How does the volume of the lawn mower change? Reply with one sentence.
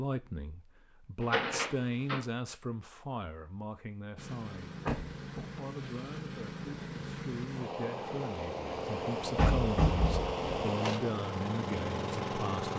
The loudness of the lawn mower goes up.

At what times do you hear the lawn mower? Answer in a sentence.
You can hear the lawn mower from 4.2 to 12.7 s.